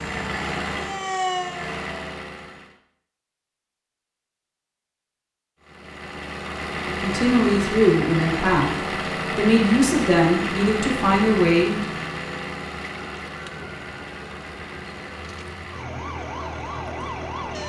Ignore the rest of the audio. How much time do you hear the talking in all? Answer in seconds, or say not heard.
4 s.